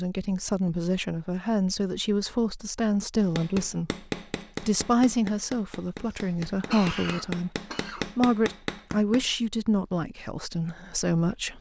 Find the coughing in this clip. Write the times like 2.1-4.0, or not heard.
6.0-8.1.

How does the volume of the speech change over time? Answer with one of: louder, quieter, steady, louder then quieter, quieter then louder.
steady.